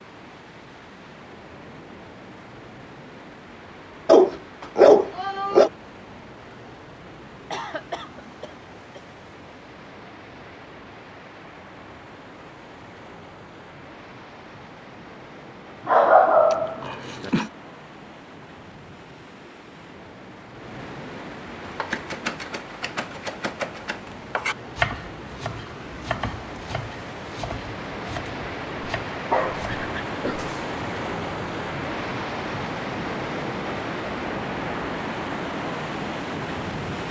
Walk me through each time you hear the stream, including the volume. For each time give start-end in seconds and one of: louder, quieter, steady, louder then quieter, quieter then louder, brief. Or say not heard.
0.0-37.0 louder.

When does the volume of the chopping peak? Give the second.
25 s.